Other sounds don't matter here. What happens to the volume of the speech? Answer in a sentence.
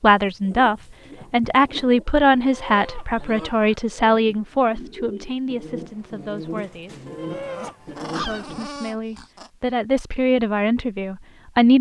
The volume of the speech goes down, then up.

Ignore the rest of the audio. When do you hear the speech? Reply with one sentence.
The speech can be heard from 0.0 to 7.0 s and from 8.2 to 11.7 s.